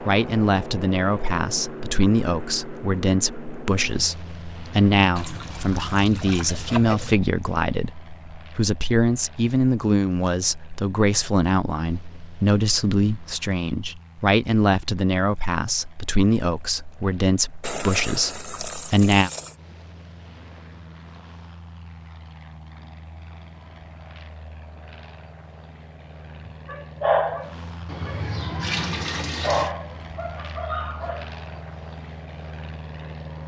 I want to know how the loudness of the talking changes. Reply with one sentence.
The volume of the talking stays about the same.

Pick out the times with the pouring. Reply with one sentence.
The pouring can be heard from 5.2 to 7.2 s, from 17.6 to 19.6 s and from 27.9 to 29.7 s.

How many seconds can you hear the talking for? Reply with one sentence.
The talking can be heard for 19 seconds in total.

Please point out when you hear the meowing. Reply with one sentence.
You can't hear the meowing here.